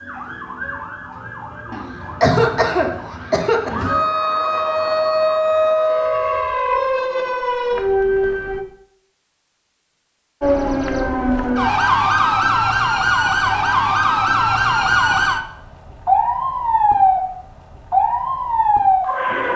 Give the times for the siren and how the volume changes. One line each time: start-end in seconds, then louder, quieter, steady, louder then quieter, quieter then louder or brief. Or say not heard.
0.0-8.7 louder
10.4-19.5 steady.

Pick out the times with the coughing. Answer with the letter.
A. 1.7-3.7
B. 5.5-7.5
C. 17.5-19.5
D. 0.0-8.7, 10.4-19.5
A.